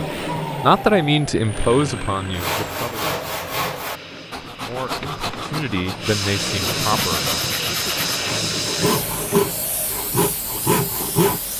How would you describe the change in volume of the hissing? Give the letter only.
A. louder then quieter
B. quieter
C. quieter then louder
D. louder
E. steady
A.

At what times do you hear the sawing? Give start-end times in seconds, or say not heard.
2.3-11.4.